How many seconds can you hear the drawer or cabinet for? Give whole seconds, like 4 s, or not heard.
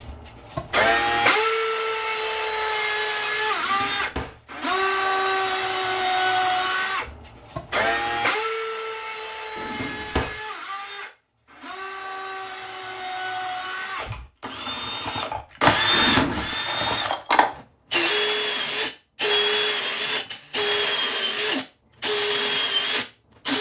2 s.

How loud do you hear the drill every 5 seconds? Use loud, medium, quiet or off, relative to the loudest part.
loud, loud, medium, loud, loud.